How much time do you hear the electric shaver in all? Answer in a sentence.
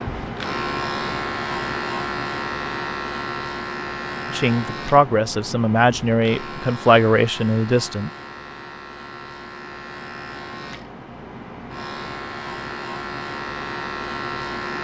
The electric shaver can be heard for 15 seconds in total.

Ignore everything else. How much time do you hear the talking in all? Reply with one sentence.
The talking can be heard for 4 seconds in total.